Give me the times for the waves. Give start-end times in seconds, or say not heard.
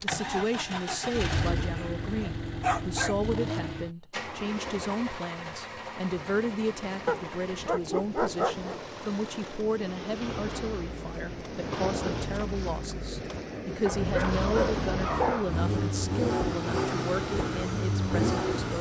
4.2-18.7.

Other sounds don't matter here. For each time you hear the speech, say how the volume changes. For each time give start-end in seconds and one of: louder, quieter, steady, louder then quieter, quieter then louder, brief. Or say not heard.
0.0-18.7 steady.